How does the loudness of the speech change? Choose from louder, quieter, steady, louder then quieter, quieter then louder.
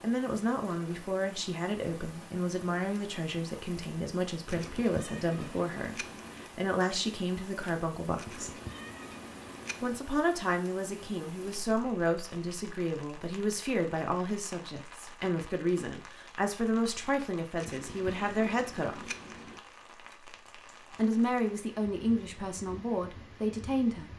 steady.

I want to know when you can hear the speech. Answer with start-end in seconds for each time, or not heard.
0.0-8.5, 9.8-19.1, 20.9-24.1.